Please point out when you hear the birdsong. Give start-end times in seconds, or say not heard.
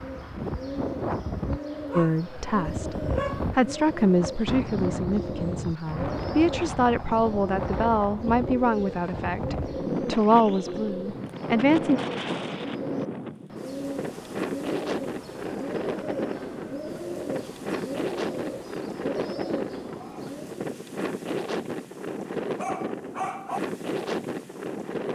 0.0-20.6.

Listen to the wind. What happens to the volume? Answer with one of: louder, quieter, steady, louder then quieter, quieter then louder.
steady.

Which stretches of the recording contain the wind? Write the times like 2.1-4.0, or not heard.
0.0-25.0.